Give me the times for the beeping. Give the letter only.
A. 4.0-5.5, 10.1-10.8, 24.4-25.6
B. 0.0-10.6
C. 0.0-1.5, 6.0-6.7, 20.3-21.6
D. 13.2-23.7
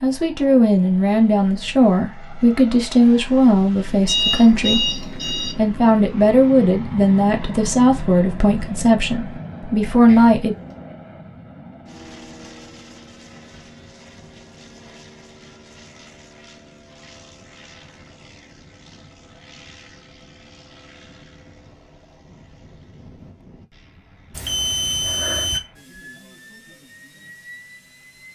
A.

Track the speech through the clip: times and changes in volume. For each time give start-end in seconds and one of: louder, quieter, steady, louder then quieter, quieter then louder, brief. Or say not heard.
0.0-10.6 steady.